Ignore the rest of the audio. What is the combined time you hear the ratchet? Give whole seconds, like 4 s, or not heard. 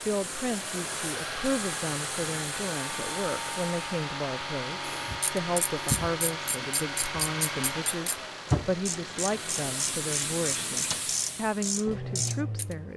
8 s.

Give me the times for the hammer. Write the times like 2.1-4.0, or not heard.
not heard.